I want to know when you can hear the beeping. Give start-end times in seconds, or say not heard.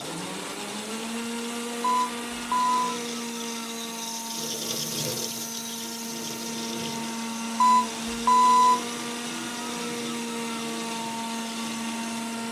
1.8-2.9, 7.6-8.8.